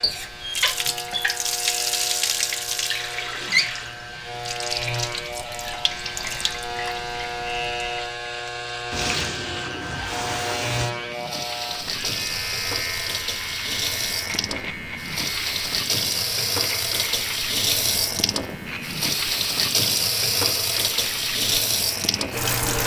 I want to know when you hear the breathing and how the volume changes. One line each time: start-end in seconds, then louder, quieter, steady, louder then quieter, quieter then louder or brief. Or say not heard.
not heard.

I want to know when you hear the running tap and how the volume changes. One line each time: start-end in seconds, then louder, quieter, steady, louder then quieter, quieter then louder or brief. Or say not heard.
0.0-22.8 quieter then louder.